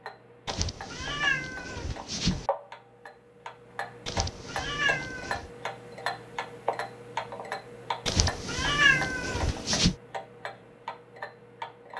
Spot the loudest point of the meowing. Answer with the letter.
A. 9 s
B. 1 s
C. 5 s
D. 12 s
A.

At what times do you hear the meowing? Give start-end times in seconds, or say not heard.
0.5-2.5, 4.0-5.5, 8.1-9.9.